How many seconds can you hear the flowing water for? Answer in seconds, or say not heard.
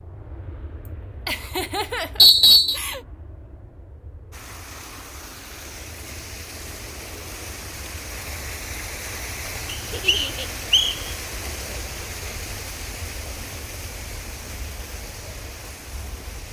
12 s.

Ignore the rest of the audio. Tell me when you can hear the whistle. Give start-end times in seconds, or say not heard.
2.1-2.8, 9.7-10.9.